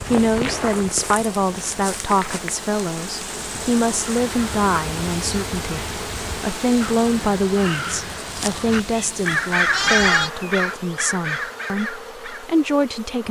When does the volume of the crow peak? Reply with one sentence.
The loudest moment of the crow is at 10 seconds.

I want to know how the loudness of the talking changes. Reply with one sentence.
The volume of the talking stays about the same.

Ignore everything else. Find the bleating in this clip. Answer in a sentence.
The bleating can be heard from 8.7 to 10.3 s.